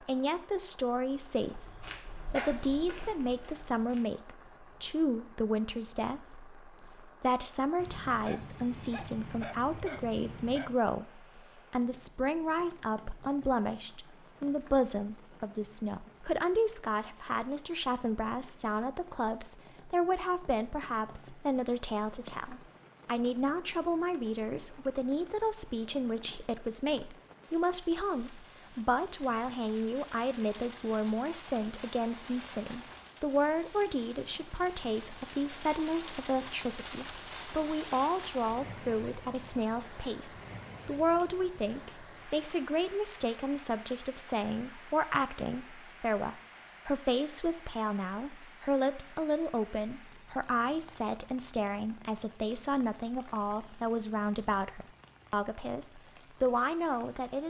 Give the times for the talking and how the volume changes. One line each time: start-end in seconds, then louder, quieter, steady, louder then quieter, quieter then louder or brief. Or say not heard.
0.0-57.4 steady.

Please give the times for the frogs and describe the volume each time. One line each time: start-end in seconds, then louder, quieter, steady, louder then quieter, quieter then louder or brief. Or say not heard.
not heard.